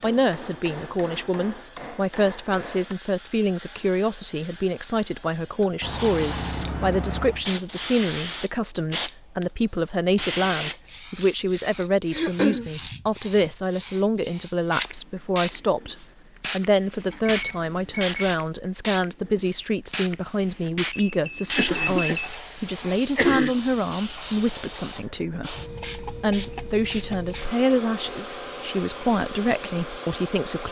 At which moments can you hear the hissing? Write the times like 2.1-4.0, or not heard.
0.0-30.6.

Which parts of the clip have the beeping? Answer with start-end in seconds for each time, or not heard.
5.8-7.5, 17.1-18.4, 20.9-22.4.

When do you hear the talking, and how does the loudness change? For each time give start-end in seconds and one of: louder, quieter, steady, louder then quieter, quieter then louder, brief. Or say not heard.
0.0-30.6 steady.